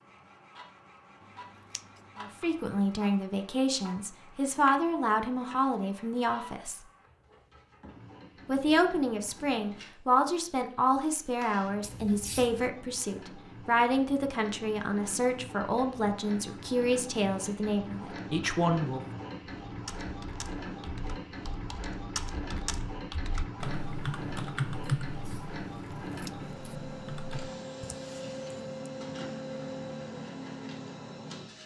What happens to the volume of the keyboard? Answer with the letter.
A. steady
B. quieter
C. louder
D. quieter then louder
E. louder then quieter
E.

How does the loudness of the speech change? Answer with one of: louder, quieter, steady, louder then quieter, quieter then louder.
steady.